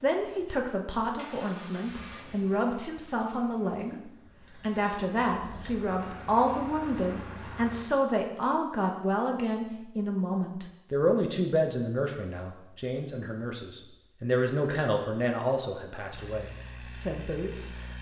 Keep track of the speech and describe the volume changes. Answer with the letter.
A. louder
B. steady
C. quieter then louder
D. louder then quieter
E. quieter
B.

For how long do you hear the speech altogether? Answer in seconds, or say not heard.
18 s.